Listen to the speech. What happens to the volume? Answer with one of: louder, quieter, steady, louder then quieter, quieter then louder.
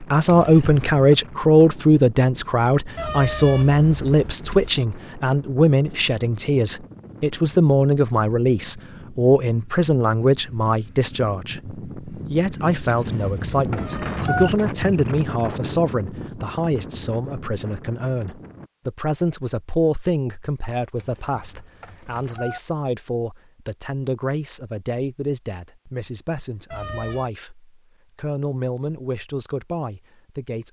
quieter.